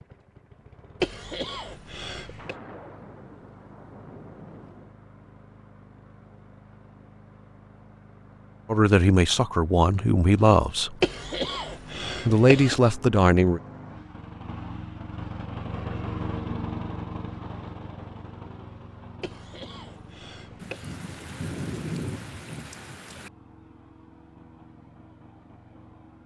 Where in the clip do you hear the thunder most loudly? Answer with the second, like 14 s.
22 s.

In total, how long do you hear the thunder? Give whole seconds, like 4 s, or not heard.
5 s.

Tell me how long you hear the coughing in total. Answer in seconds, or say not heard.
5 s.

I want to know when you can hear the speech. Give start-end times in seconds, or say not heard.
8.7-10.9, 12.2-13.6.